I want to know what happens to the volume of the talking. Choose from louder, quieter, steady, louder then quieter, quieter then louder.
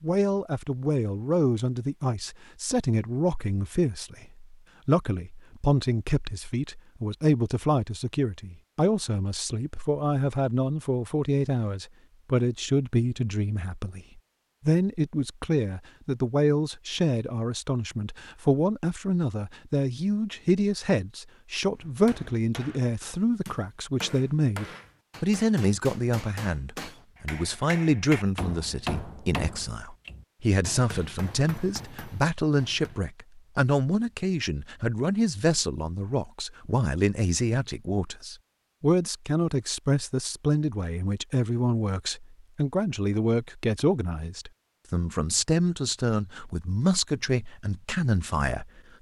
steady.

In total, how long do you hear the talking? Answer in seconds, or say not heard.
49 s.